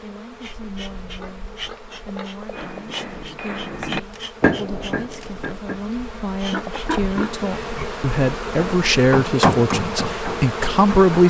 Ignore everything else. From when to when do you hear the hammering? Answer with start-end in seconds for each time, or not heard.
2.5-5.8, 8.6-11.2.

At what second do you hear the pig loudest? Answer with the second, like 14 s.
7 s.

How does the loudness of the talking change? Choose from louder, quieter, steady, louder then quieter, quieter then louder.
louder.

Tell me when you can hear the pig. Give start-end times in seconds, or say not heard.
1.1-2.5, 6.5-7.9.